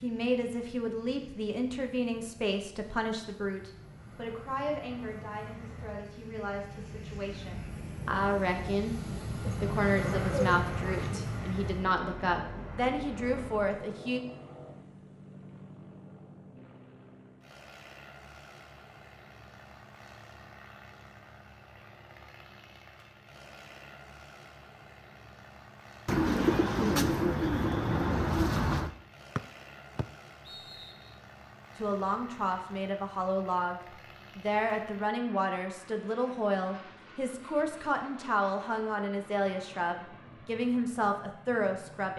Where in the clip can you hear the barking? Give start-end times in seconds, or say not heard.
not heard.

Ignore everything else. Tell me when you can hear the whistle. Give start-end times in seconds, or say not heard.
29.4-31.1.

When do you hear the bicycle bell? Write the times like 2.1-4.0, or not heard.
not heard.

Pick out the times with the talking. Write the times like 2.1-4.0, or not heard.
0.0-14.2, 31.8-42.1.